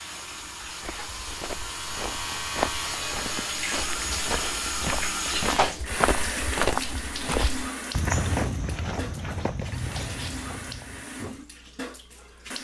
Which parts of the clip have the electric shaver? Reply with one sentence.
The electric shaver can be heard from 0.0 to 3.8 s.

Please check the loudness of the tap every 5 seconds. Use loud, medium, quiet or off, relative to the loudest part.
loud, loud, medium.